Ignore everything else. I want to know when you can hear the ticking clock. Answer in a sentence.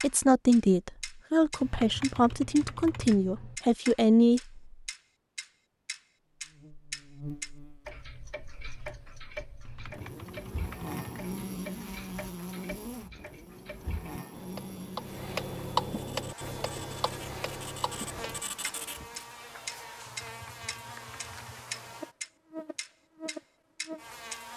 You can hear the ticking clock from 0.0 to 24.4 s.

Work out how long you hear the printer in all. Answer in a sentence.
The printer can be heard for 3 seconds in total.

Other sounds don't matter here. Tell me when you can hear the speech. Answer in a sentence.
The speech can be heard from 0.0 to 4.8 s.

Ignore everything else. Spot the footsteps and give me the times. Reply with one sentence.
You can't hear the footsteps here.